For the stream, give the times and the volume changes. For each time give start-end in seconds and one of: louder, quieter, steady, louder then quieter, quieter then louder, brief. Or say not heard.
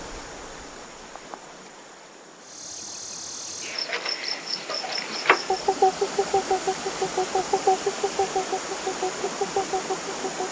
0.0-10.4 louder.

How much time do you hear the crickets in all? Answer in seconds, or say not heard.
8 s.